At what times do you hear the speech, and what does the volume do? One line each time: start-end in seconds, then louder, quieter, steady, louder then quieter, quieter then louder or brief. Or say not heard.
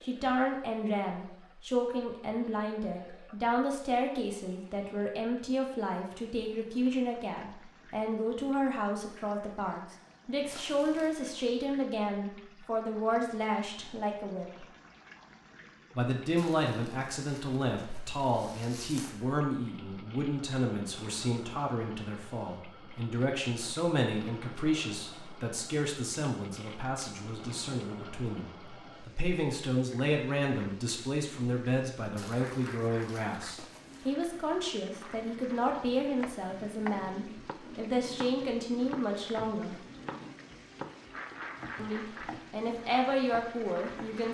0.0-14.4 steady
15.9-39.8 steady
41.8-44.2 brief.